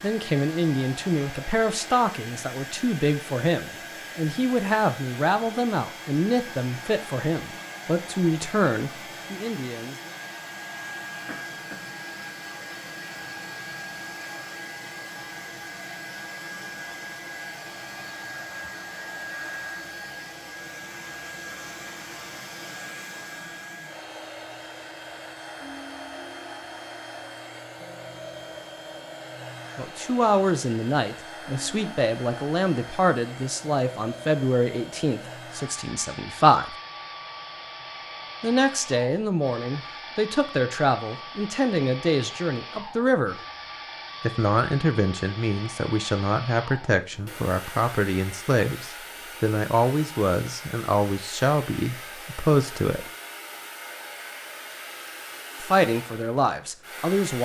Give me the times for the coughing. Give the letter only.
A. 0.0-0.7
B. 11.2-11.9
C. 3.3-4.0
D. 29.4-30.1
B.